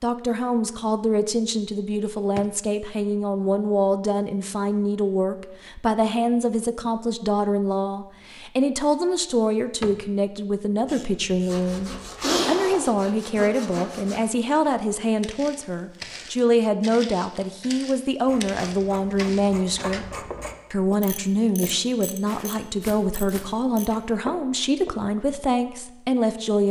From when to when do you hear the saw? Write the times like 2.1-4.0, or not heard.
11.4-14.3.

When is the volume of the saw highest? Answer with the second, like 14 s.
12 s.